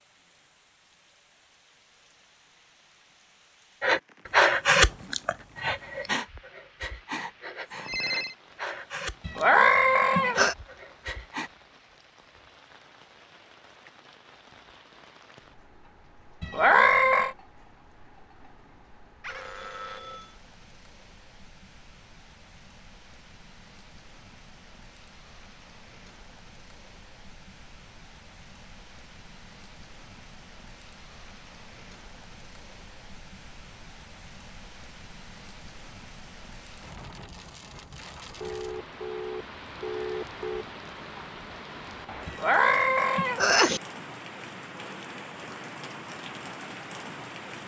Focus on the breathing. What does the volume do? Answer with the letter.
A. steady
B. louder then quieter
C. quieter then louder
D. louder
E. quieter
E.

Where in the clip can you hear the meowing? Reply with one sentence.
The meowing can be heard from 9.2 to 10.6 s, from 16.4 to 17.4 s and from 42.2 to 43.8 s.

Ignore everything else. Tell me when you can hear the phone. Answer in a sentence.
The phone can be heard from 7.8 to 8.3 s, from 19.2 to 20.4 s and from 38.4 to 40.6 s.